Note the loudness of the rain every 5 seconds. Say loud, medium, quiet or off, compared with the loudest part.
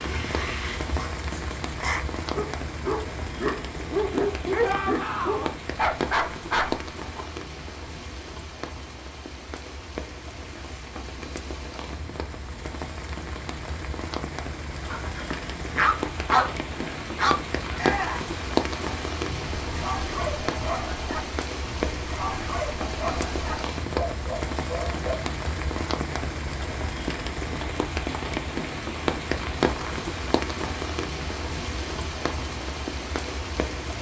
medium, medium, medium, loud, loud, loud, loud.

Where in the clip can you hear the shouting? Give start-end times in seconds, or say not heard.
4.6-5.5, 17.8-18.3.